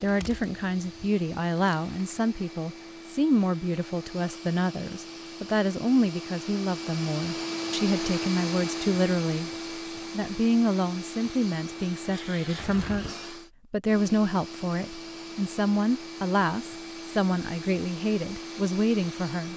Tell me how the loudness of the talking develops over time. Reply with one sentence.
The loudness of the talking stays about the same.